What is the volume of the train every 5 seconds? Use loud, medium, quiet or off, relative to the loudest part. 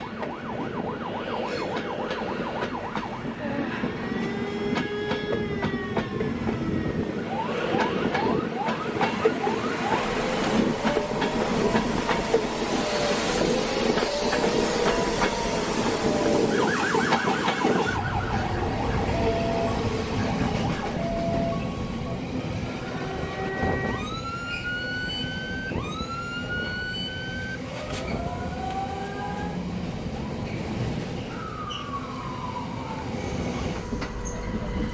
medium, loud, loud, loud, medium, medium, medium.